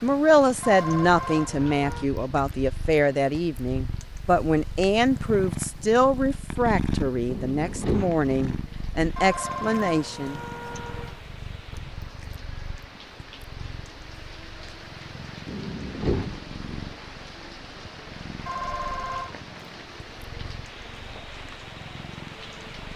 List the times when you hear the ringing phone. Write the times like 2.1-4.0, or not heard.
0.6-2.1, 9.2-11.2, 18.4-19.4.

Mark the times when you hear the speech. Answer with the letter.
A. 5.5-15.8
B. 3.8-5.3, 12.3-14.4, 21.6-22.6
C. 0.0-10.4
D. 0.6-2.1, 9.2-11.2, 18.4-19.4
C.